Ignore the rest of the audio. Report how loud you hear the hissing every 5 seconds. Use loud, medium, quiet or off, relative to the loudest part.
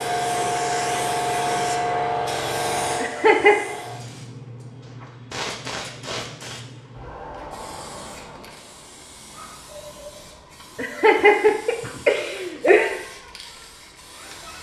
loud, medium, quiet.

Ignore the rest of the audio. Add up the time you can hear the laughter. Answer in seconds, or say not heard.
3 s.